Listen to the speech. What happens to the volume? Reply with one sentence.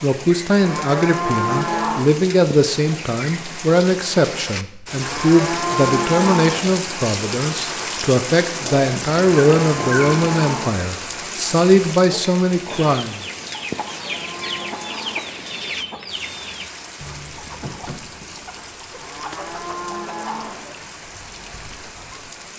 The loudness of the speech stays about the same.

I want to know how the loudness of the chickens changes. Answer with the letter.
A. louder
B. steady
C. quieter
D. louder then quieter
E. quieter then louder
C.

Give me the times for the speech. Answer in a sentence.
You can hear the speech from 0.0 to 13.2 s.